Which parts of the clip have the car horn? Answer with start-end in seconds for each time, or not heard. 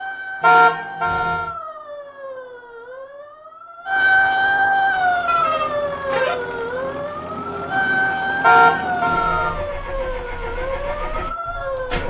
0.4-1.5, 5.2-6.3, 8.4-9.7.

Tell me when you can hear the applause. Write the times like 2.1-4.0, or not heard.
not heard.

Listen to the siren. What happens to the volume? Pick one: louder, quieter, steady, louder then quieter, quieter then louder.
louder then quieter.